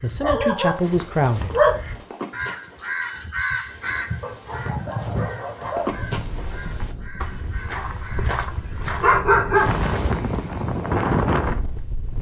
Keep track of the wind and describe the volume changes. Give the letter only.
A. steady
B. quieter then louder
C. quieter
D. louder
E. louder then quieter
D.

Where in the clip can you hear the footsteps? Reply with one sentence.
The footsteps can be heard from 0.6 to 10.3 s.